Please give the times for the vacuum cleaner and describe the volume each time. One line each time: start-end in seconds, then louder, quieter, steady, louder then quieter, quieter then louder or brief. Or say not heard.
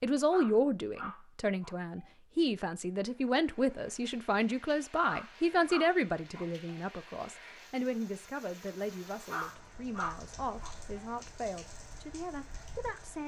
not heard.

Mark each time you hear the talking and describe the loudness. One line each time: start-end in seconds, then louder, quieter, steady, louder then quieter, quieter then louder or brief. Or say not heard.
0.0-13.2 quieter.